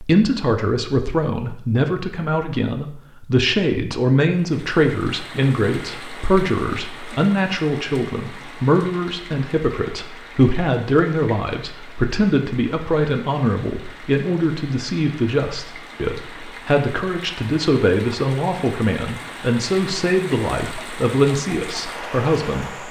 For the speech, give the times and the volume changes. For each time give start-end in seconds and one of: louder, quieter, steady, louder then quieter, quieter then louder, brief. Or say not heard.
0.0-22.8 steady.